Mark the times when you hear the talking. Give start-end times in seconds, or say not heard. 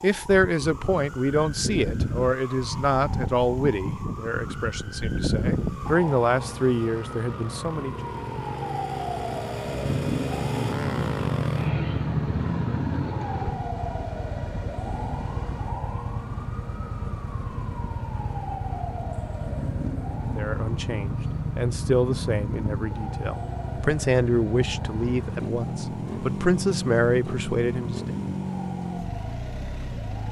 0.0-8.0, 20.4-28.1.